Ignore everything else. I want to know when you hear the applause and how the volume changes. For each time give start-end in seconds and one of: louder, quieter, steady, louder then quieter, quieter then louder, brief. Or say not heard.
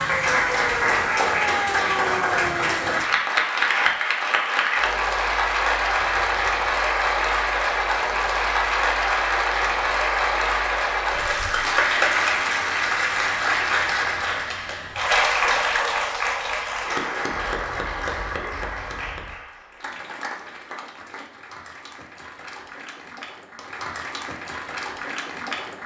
0.0-25.8 quieter.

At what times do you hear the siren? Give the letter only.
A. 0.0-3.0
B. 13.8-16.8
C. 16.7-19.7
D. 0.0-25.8
A.